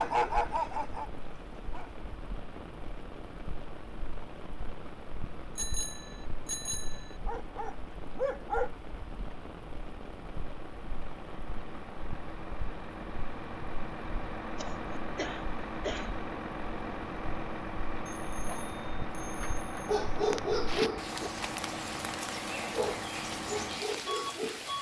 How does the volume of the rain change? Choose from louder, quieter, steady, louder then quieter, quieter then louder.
louder.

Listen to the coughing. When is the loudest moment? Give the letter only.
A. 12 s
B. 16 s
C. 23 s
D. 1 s
B.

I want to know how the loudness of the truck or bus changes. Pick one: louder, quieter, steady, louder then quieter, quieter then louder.
louder.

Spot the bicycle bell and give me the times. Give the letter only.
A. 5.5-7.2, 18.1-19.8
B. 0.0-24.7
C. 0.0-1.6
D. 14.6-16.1
A.